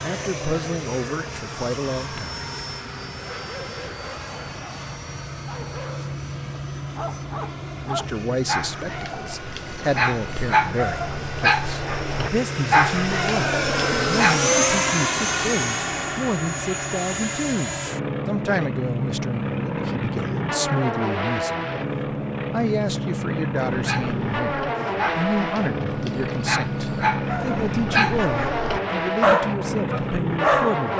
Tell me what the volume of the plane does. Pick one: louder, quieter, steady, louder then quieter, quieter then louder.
louder.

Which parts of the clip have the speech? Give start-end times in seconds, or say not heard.
0.0-2.5, 7.8-21.9, 22.5-30.9.